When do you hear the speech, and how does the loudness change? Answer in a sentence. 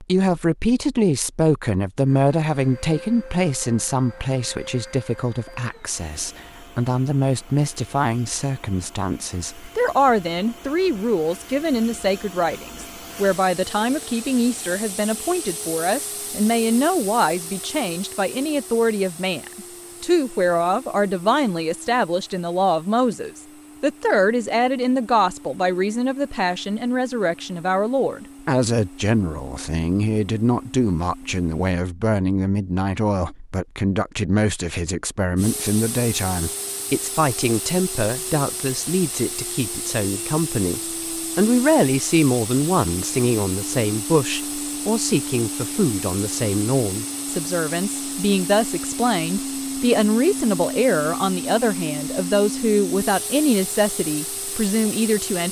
The speech can be heard from 0.0 to 55.4 s, at a steady volume.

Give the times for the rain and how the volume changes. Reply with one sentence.
The rain can't be heard in this clip.